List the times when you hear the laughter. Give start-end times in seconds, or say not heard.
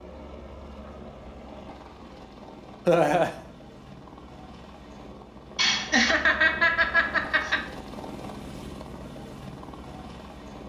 2.9-3.3, 5.5-7.7.